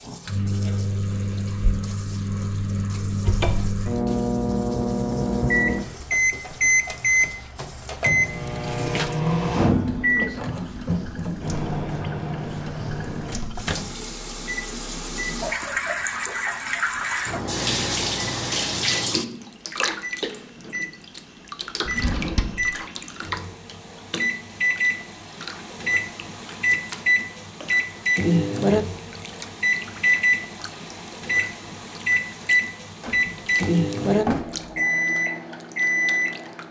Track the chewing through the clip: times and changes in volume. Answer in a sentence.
You can't hear the chewing here.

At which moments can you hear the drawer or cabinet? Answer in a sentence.
You can hear the drawer or cabinet from 3.2 to 3.9 s, from 21.9 to 22.8 s and from 33.0 to 34.8 s.